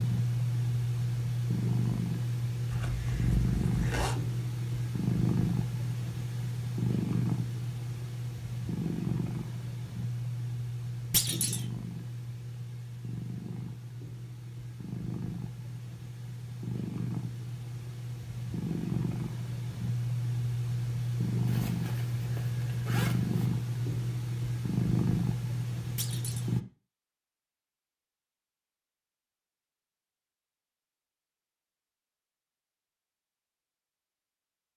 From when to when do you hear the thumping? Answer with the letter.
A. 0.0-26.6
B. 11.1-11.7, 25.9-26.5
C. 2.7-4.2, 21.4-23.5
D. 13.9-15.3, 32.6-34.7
B.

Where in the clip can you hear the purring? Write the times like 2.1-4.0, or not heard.
0.0-26.6.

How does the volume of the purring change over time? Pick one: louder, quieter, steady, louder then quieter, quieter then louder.
quieter then louder.